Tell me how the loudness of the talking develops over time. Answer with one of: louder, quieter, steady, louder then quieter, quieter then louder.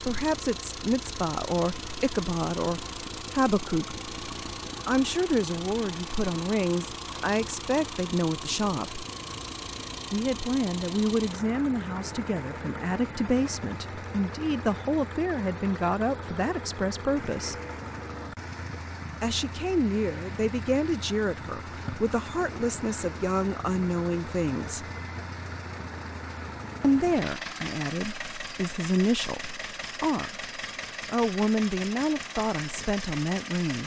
steady.